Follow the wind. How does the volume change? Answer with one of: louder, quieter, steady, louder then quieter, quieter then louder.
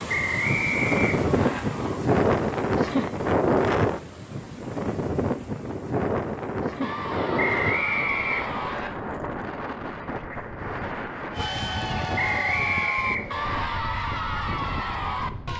quieter.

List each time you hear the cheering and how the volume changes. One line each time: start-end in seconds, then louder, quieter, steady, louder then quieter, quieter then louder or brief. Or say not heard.
0.0-2.0 brief
6.8-8.8 brief
11.3-15.5 steady.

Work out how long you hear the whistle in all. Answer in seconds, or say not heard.
5 s.